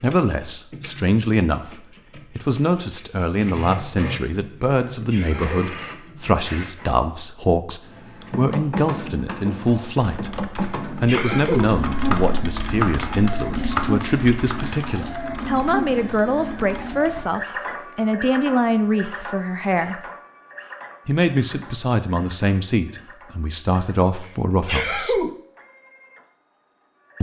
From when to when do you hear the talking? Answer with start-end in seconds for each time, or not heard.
0.0-10.3, 11.0-20.0, 21.1-25.2.